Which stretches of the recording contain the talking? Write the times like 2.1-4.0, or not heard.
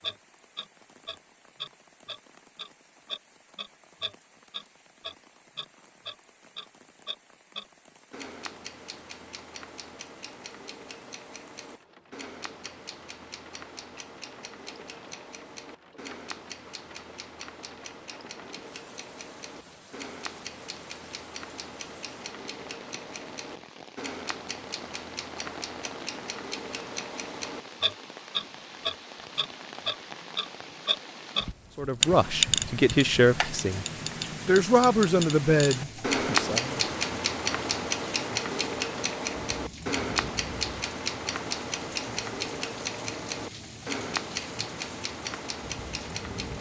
31.8-33.9, 34.5-36.8.